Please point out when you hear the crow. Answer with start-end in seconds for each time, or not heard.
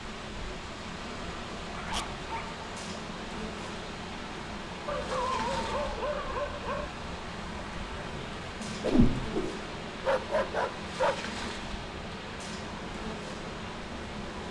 not heard.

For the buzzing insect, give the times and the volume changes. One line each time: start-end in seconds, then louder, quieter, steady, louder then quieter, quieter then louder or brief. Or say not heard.
0.0-14.4 steady.